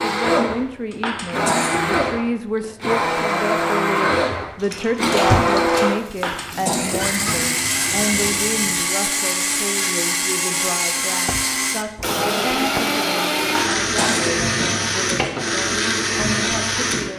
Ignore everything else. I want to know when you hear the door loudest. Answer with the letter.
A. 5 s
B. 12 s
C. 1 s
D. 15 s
A.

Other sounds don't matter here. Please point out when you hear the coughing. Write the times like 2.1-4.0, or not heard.
0.9-2.1, 6.1-7.3, 13.4-15.4.